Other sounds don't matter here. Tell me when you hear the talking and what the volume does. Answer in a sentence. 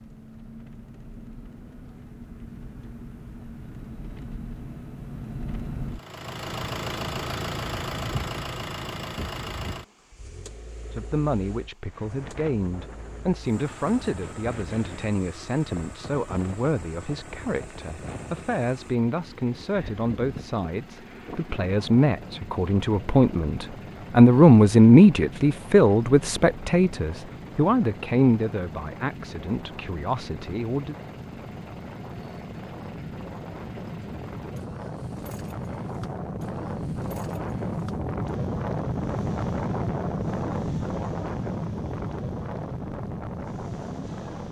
You can hear the talking from 10.9 to 30.9 s, getting louder then quieter.